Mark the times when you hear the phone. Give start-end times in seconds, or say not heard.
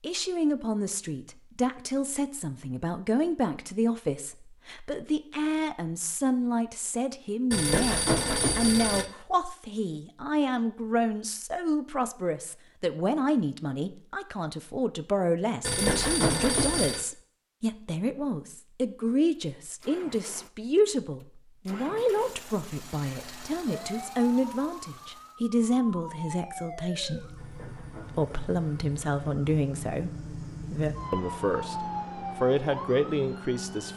7.5-9.1, 15.6-17.1, 27.4-29.2.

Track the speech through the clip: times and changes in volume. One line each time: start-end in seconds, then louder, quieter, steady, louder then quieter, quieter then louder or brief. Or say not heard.
0.0-33.9 steady.